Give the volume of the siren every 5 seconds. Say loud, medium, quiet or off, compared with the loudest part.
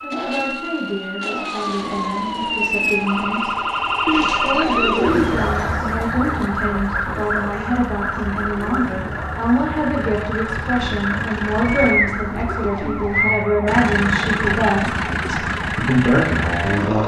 loud, loud, medium, medium.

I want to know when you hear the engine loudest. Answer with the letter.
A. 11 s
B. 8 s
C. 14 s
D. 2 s
C.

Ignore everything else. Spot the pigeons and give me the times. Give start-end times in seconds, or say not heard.
4.0-5.8, 11.6-13.4.